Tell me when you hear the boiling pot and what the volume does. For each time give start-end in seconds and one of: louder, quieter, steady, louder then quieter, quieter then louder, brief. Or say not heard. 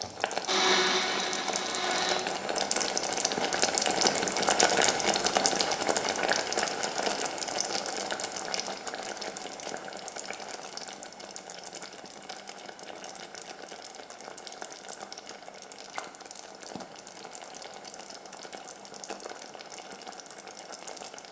0.0-21.2 quieter.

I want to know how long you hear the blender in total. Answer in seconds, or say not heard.
2 s.